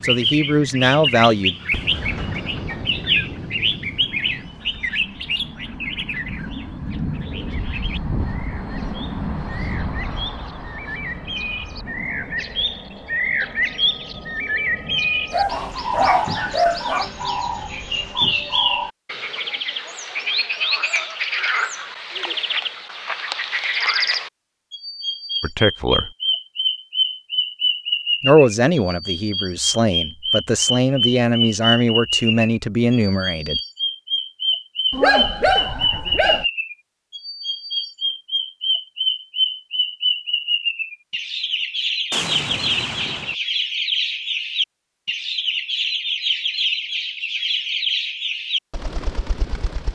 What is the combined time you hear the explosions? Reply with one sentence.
The explosions can be heard for 4 seconds in total.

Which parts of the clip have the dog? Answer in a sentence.
You can hear the dog from 15.3 to 17.1 s and from 34.9 to 36.5 s.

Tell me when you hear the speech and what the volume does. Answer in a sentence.
You can hear the speech briefly from 0.0 to 1.6 s; briefly from 25.4 to 26.1 s; and from 28.2 to 33.6 s, at a steady volume.